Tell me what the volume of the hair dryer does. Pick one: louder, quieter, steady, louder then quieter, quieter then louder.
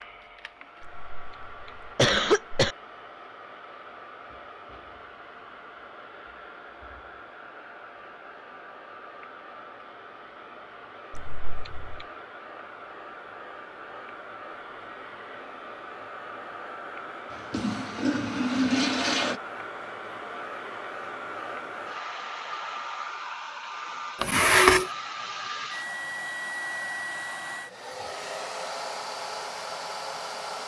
louder.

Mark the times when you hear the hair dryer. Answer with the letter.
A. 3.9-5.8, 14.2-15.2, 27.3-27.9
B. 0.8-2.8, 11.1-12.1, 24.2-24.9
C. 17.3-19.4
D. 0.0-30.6
D.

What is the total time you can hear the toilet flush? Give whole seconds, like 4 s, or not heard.
2 s.